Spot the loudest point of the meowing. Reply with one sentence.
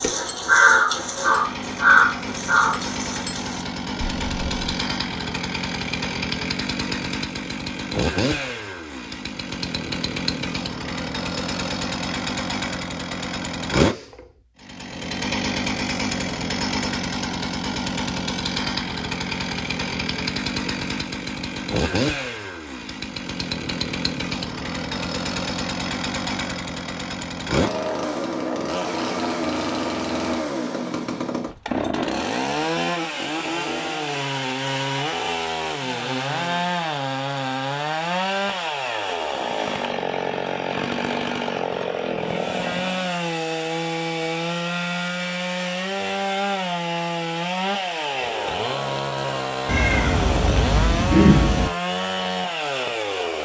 The volume of the meowing peaks at 51 seconds.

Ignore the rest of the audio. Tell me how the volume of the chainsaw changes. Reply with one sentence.
The volume of the chainsaw stays about the same.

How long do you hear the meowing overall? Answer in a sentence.
The meowing can be heard for 2 seconds in total.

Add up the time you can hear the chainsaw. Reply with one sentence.
The chainsaw can be heard for 53 seconds in total.